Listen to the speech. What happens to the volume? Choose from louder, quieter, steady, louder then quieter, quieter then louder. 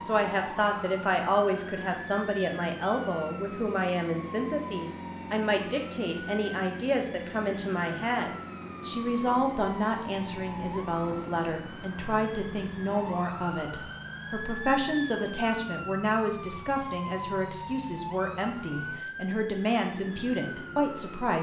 steady.